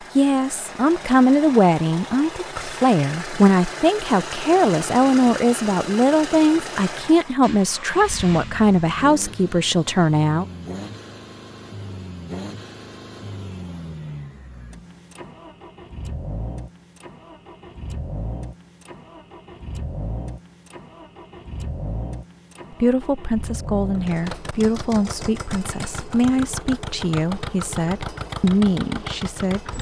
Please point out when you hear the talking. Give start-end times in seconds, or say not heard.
0.1-10.4, 22.7-29.7.